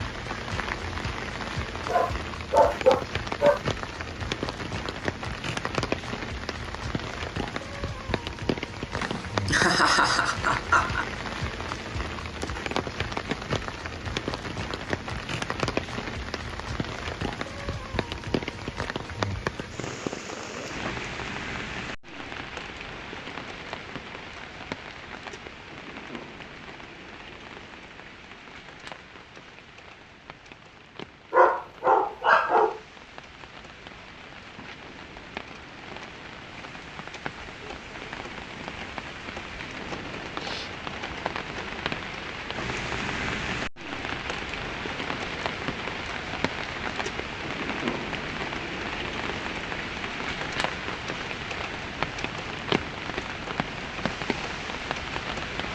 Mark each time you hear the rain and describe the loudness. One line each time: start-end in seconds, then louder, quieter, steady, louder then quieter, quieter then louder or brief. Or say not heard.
0.0-55.7 quieter then louder.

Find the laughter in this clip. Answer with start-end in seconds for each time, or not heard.
9.0-11.1.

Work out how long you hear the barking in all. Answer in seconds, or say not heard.
3 s.